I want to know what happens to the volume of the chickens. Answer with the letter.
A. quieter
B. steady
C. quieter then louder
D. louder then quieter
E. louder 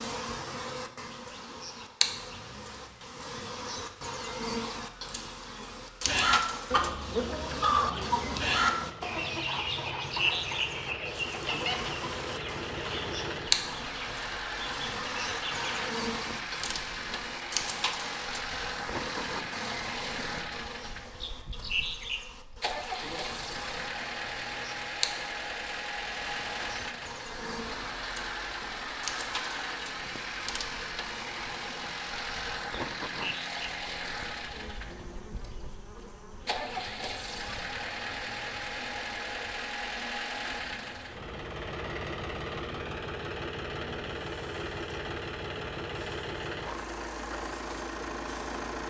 A.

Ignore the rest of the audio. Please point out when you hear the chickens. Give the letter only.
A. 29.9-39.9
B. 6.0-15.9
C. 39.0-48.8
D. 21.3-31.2
B.